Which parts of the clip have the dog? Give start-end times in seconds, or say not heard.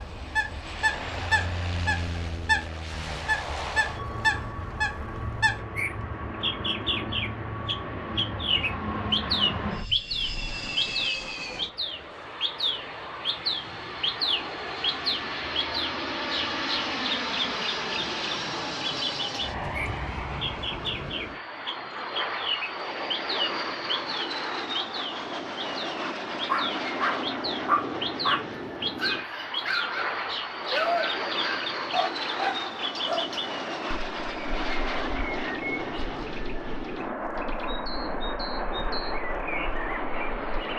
26.4-33.4.